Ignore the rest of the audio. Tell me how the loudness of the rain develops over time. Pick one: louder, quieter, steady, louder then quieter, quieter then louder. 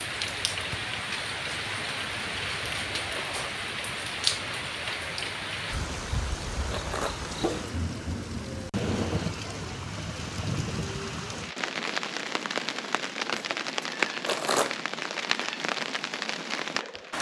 steady.